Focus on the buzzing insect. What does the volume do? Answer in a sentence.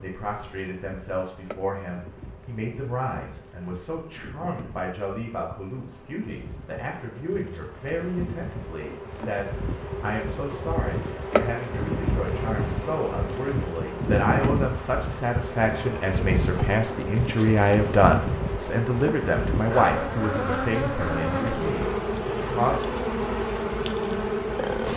The loudness of the buzzing insect goes up.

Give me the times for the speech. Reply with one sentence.
The speech can be heard from 0.0 to 23.0 s.